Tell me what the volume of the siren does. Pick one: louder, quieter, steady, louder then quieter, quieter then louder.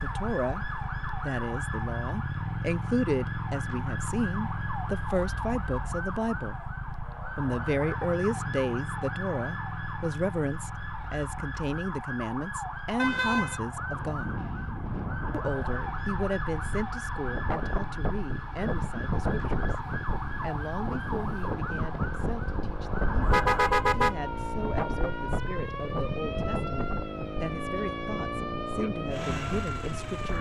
steady.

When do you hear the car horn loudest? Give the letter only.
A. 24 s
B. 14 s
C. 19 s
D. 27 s
A.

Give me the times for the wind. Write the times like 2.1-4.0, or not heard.
13.8-30.3.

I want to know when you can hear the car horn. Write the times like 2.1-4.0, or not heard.
12.9-13.6, 23.2-24.1.